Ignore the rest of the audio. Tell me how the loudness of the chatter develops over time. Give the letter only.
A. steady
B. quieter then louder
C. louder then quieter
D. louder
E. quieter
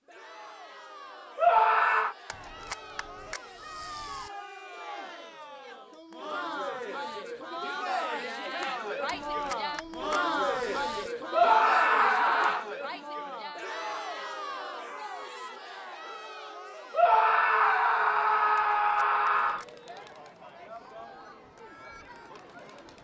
C.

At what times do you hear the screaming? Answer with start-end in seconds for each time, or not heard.
1.4-2.1, 11.3-12.7, 16.9-19.6.